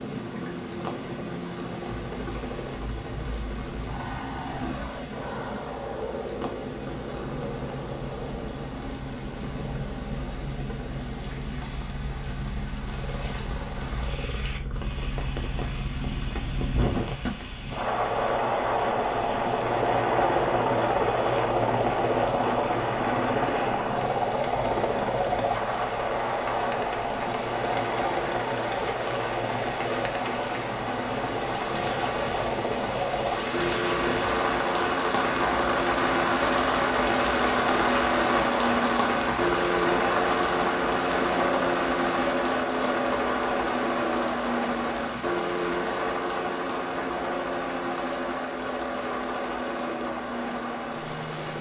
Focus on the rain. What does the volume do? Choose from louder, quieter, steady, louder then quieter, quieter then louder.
louder then quieter.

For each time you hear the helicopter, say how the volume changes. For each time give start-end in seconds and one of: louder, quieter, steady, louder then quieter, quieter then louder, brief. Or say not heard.
0.0-51.5 louder.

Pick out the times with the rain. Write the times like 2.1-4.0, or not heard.
0.0-51.5.